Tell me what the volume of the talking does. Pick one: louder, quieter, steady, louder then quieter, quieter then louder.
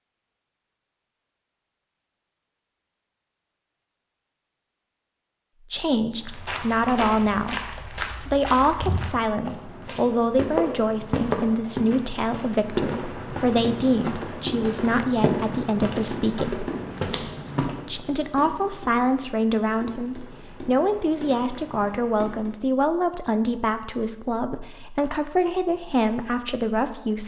steady.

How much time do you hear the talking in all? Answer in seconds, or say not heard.
20 s.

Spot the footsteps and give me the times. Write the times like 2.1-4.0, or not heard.
6.2-17.8.